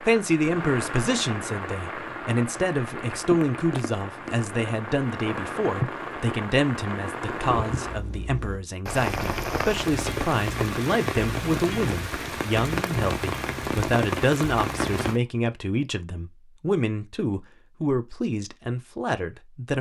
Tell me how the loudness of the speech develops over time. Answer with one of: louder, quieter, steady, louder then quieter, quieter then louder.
steady.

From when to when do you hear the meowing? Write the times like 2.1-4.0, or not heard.
not heard.